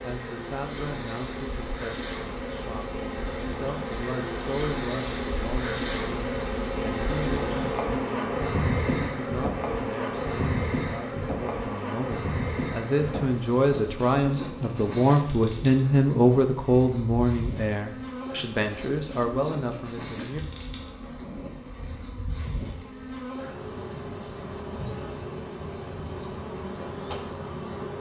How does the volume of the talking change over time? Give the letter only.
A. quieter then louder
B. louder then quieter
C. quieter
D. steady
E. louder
B.